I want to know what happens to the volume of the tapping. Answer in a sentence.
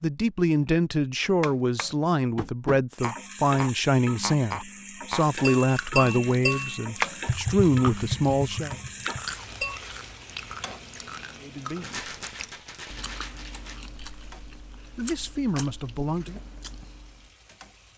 The loudness of the tapping goes up, then down.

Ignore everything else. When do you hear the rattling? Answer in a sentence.
You can hear the rattling from 11.8 to 13.8 s.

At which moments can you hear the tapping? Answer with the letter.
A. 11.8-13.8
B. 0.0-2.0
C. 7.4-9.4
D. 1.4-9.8
D.